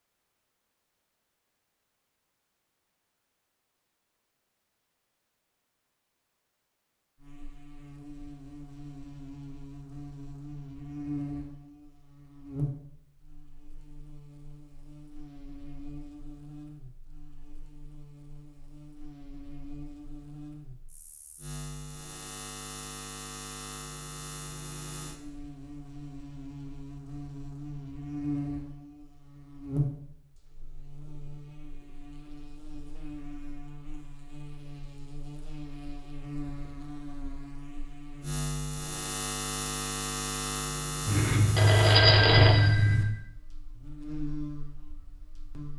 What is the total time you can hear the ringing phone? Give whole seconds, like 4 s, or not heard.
2 s.